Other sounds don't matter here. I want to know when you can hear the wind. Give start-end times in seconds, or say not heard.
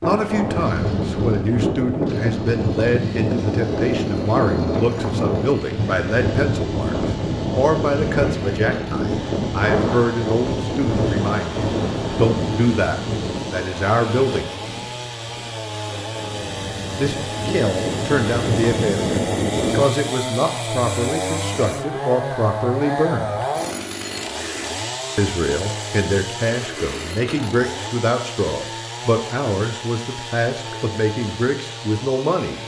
0.0-19.9.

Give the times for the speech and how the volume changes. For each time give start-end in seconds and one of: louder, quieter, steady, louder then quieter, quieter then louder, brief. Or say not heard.
0.0-14.5 steady
16.9-23.4 steady
25.1-32.6 steady.